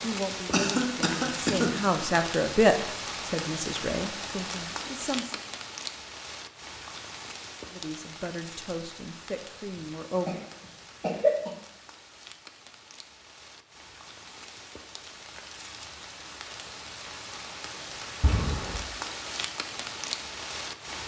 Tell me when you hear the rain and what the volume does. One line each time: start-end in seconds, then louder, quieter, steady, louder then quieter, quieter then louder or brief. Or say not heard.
0.0-21.0 quieter then louder.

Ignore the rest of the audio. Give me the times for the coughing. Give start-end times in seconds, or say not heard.
0.5-2.0, 10.2-11.5, 18.2-18.9.